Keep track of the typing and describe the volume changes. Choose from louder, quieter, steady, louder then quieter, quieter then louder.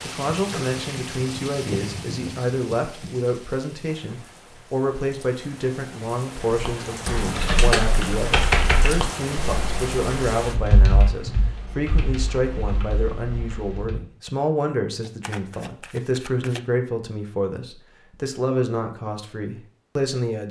quieter.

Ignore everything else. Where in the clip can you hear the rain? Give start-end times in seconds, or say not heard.
0.0-10.6.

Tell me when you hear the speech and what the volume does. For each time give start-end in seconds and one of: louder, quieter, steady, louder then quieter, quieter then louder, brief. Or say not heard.
0.0-20.4 steady.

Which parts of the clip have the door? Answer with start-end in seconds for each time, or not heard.
not heard.